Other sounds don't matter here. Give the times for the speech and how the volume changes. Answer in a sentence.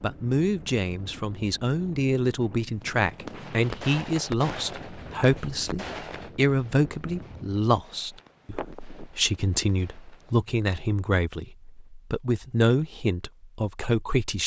The speech can be heard from 0.0 to 14.4 s, at a steady volume.